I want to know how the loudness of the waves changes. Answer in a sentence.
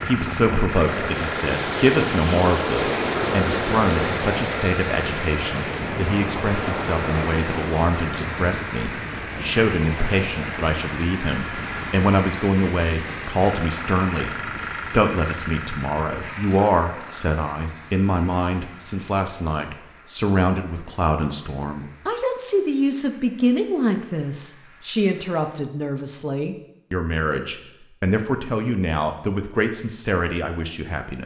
The volume of the waves goes down.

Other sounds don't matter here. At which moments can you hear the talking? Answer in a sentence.
You can hear the talking from 0.0 to 31.2 s.